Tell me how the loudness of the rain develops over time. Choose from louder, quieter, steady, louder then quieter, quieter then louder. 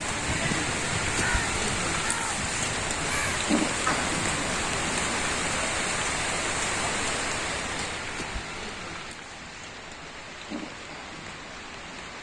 quieter.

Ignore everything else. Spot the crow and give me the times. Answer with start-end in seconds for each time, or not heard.
0.0-5.5.